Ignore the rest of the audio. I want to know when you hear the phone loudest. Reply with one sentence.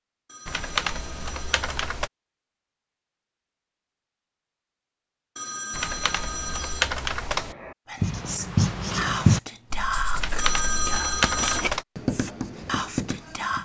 The loudest moment of the phone is at 11 seconds.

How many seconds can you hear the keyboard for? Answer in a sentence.
You can hear the keyboard for 5 seconds altogether.